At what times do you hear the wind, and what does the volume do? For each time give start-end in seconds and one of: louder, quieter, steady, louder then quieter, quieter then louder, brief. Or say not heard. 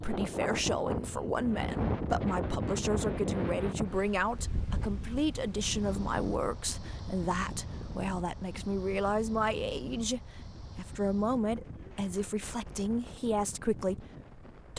0.0-14.7 quieter.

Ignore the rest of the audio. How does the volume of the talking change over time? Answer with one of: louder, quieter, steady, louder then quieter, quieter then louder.
steady.